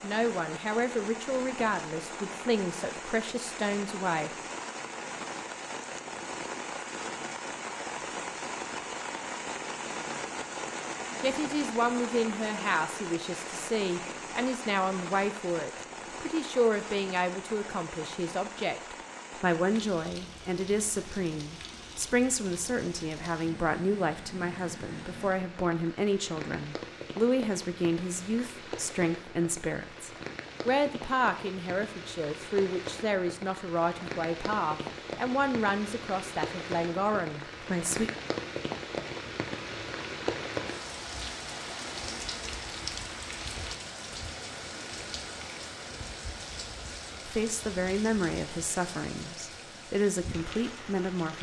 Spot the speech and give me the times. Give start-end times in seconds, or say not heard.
0.0-4.3, 11.2-38.1, 47.2-51.3.